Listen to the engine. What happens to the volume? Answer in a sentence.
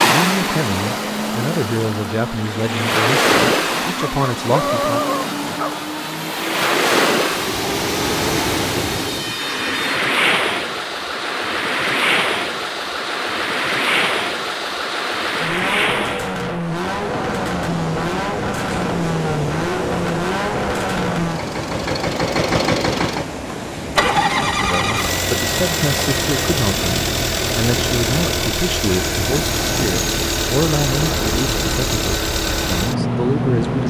The loudness of the engine goes up.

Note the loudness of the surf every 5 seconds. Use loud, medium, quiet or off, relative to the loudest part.
loud, loud, loud, medium, medium, medium, medium.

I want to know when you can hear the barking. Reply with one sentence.
The barking can be heard from 4.0 to 5.8 s.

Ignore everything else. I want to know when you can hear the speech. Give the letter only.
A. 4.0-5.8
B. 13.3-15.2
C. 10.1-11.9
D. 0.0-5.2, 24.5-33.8
D.